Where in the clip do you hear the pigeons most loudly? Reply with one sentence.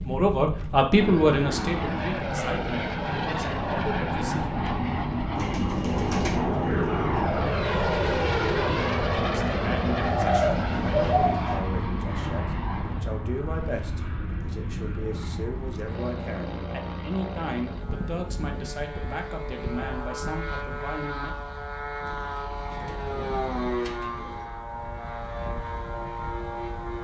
The loudest moment of the pigeons is at 11 seconds.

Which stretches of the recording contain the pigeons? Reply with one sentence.
The pigeons can be heard from 5.3 to 7.2 s, from 10.0 to 11.7 s and from 22.0 to 24.5 s.